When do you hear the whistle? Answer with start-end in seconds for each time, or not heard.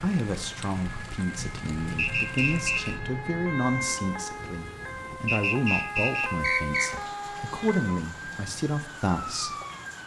1.9-3.0, 5.2-6.9.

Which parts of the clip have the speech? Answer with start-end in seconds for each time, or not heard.
0.0-9.6.